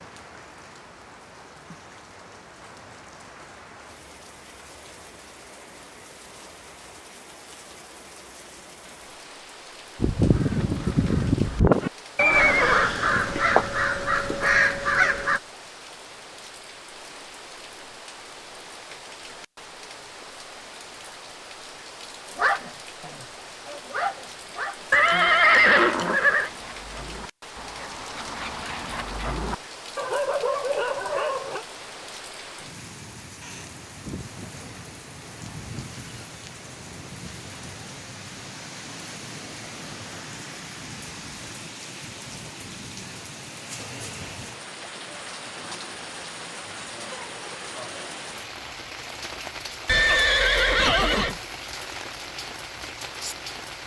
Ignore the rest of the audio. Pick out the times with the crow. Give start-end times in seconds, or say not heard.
10.0-15.4.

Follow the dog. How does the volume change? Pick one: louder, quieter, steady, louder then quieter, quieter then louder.
quieter then louder.